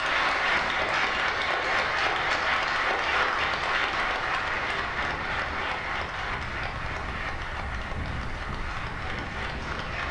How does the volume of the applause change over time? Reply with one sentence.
The volume of the applause goes down.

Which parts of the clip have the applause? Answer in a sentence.
You can hear the applause from 0.0 to 10.0 s.